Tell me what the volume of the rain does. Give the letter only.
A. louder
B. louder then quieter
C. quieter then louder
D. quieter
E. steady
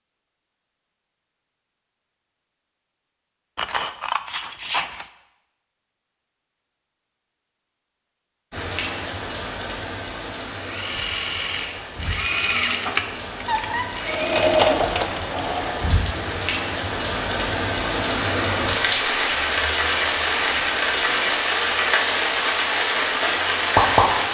A.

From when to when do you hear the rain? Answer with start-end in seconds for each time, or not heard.
8.5-24.2.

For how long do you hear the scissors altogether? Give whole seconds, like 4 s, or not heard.
4 s.